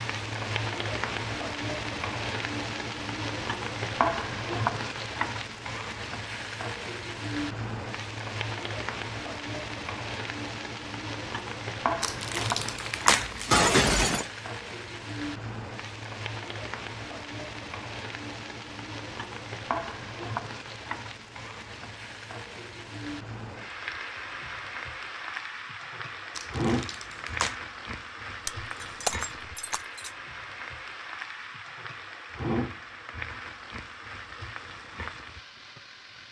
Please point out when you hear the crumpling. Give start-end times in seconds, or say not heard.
12.0-13.7, 26.4-27.6.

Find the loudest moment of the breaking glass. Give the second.
14 s.